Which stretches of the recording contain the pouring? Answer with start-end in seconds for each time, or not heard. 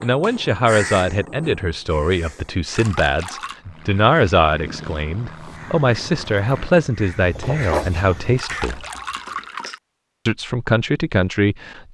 2.7-3.6, 8.3-9.8.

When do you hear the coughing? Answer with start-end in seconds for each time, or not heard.
not heard.